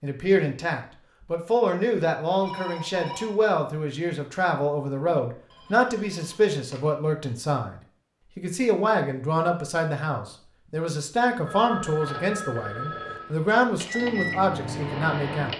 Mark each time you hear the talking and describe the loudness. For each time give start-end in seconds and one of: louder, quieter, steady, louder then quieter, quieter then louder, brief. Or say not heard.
0.0-7.8 steady
8.3-15.5 steady.